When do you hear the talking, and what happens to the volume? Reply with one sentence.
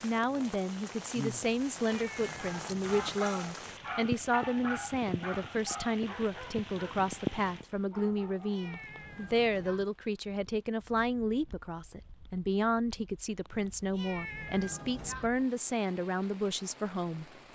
You can hear the talking from 0.0 to 17.2 s, at a steady volume.